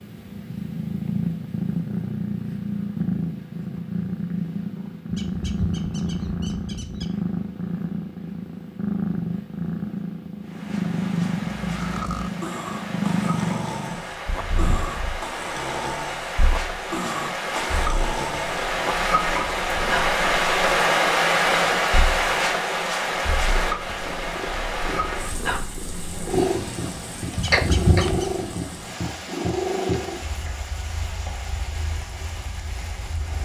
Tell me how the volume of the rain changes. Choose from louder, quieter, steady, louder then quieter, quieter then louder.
louder then quieter.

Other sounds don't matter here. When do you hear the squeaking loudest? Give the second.
28 s.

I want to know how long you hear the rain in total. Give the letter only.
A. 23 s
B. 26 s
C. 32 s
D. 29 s
A.